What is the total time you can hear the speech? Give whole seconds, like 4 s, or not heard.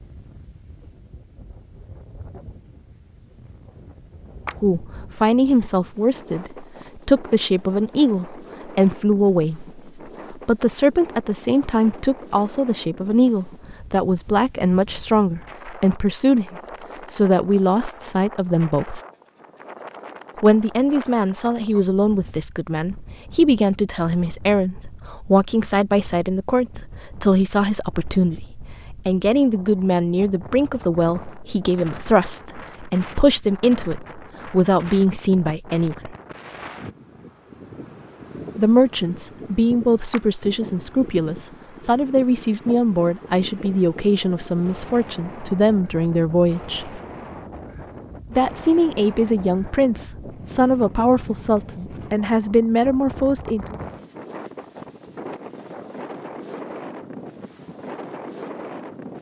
44 s.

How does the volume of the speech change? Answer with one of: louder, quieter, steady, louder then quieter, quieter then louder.
steady.